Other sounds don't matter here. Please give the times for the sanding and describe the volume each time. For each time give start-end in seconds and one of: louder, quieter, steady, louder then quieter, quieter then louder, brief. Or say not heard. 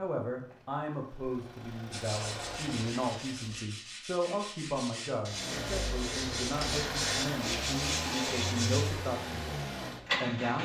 1.9-8.9 louder.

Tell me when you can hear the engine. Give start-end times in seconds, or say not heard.
0.1-3.7, 5.2-10.6.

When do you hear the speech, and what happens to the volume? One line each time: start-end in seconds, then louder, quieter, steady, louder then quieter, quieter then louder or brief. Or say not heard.
0.0-9.4 steady
10.2-10.6 brief.